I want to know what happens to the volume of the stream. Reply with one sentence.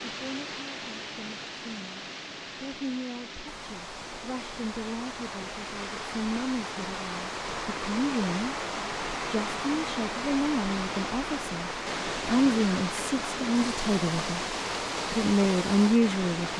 The volume of the stream goes up.